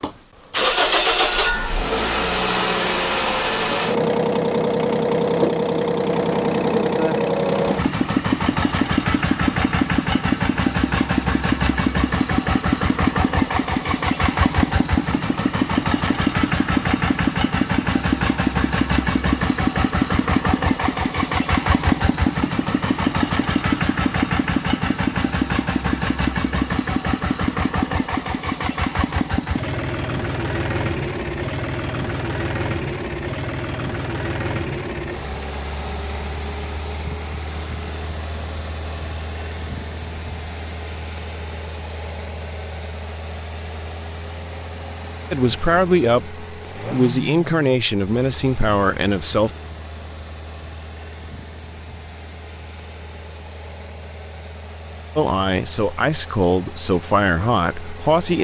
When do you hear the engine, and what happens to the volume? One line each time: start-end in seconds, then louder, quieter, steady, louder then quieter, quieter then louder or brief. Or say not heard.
0.0-58.3 quieter.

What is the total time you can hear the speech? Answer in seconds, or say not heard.
7 s.